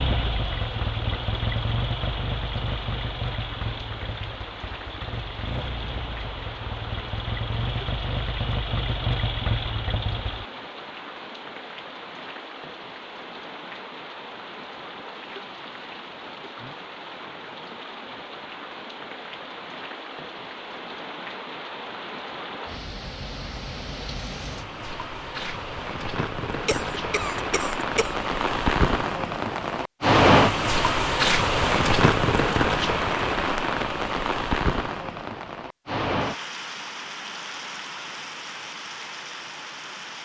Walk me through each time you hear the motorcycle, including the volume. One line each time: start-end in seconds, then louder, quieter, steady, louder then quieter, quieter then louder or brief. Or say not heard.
0.0-10.4 quieter then louder.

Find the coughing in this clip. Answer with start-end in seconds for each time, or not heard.
26.5-28.2.